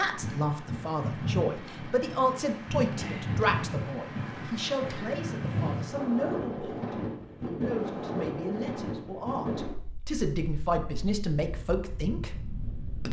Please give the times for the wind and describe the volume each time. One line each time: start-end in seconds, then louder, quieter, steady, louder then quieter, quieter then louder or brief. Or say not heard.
0.0-13.0 quieter.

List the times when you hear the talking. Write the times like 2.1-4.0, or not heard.
0.0-13.0.